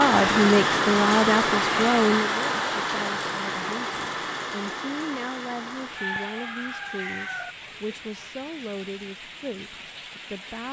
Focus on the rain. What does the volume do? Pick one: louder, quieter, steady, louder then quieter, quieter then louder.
quieter.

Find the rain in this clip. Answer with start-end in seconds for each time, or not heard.
0.0-10.6.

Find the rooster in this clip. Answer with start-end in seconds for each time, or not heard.
6.0-7.5.